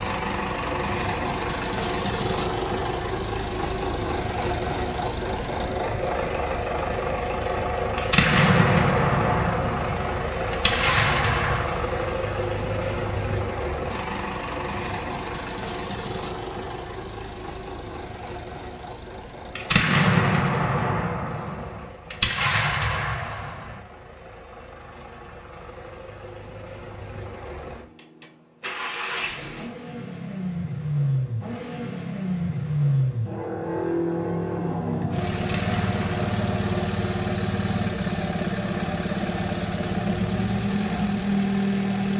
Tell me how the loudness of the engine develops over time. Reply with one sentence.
The loudness of the engine goes down, then up.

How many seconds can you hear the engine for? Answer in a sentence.
The engine can be heard for 42 seconds in total.